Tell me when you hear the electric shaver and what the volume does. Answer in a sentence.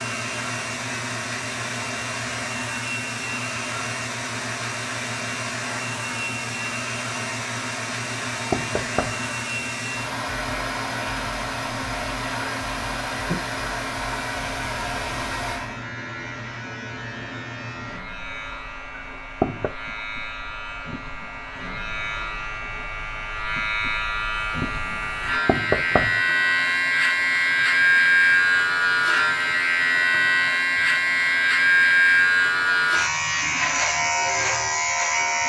The electric shaver can be heard from 0.0 to 35.4 s, getting louder.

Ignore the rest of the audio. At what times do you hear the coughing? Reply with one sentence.
The coughing can't be heard in this clip.